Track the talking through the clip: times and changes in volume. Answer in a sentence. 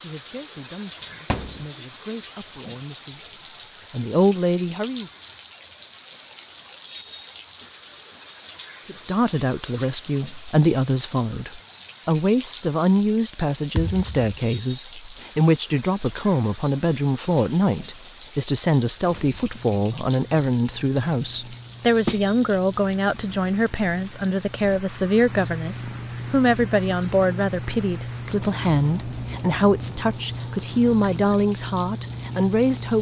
You can hear the talking from 0.0 to 5.1 s, getting quieter then louder; and from 8.8 to 32.9 s, at a steady volume.